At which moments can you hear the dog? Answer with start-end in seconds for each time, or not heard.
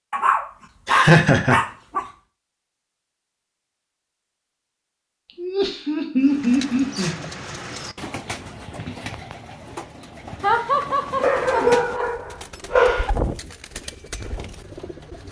0.1-2.0, 11.2-13.1.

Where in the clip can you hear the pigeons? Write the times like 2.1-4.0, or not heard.
6.2-15.2.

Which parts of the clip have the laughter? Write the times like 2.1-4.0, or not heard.
0.8-1.6, 5.3-7.3, 10.4-12.1.